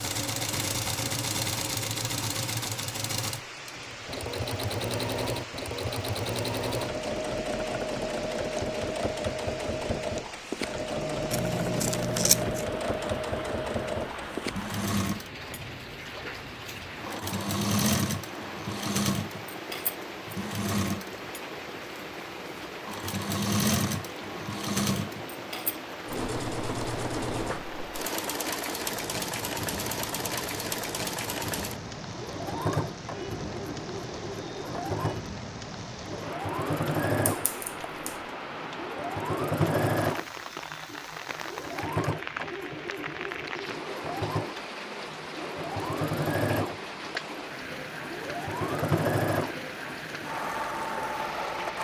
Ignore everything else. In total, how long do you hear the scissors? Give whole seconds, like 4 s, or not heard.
2 s.